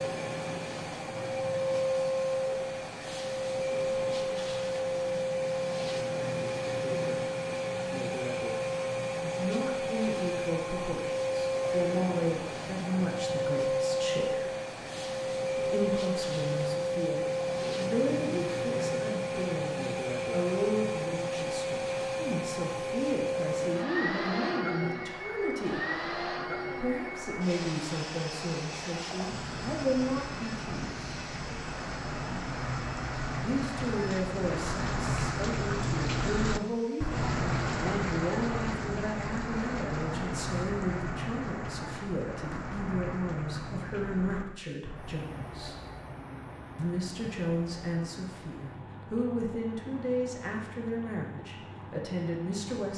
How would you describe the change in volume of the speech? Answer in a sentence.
The volume of the speech stays about the same.